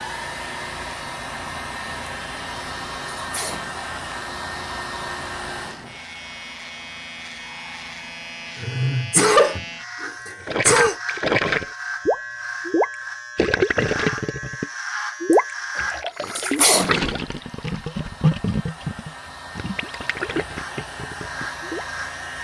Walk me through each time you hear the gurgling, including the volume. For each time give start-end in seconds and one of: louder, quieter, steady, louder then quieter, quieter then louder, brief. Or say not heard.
10.4-21.9 quieter.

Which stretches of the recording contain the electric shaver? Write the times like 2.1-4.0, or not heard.
0.0-16.1, 20.6-22.3.